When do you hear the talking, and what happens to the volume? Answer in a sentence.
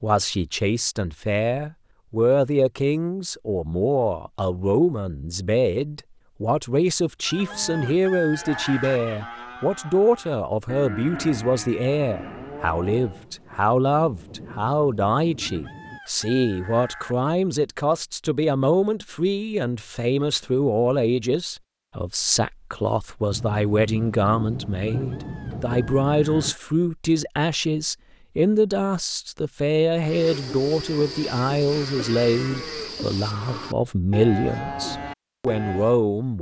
The talking can be heard from 0.0 to 36.3 s, at a steady volume.